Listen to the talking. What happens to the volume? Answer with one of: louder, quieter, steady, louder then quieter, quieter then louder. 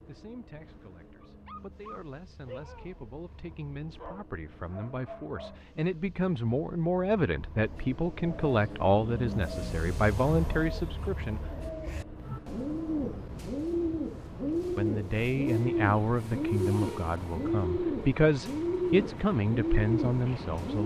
louder.